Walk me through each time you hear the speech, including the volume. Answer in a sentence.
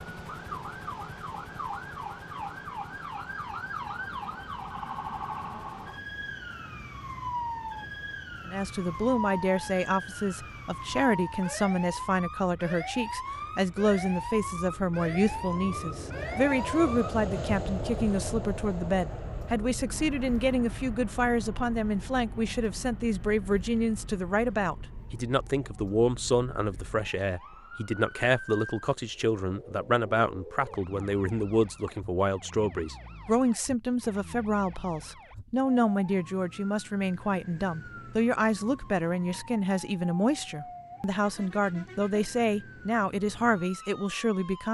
The speech can be heard from 8.4 to 44.6 s, at a steady volume.